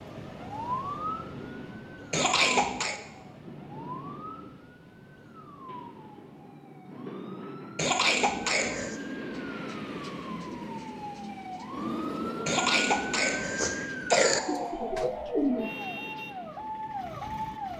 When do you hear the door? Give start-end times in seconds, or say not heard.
not heard.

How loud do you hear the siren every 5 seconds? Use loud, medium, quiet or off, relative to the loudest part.
loud, quiet, loud, loud.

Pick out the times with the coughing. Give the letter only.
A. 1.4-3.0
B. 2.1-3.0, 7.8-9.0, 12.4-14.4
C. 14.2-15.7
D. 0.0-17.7
B.